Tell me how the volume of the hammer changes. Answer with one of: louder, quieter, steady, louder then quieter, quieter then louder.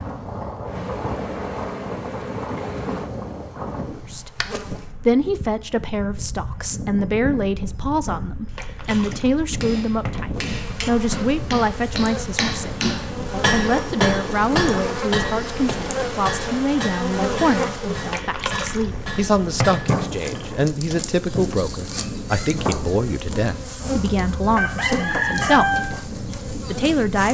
louder then quieter.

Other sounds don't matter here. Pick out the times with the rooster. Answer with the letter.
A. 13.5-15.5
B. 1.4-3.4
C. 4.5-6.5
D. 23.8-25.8
D.